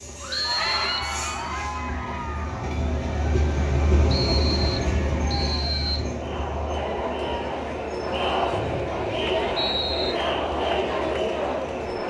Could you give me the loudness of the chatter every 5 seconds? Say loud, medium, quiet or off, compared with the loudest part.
medium, loud, loud.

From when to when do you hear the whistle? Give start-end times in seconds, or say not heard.
0.3-1.1, 4.1-6.1, 8.5-10.2.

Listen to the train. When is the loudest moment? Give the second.
4 s.